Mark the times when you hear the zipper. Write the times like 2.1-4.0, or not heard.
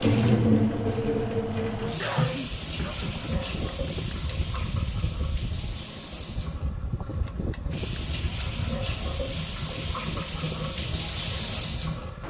not heard.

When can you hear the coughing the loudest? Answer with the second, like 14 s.
2 s.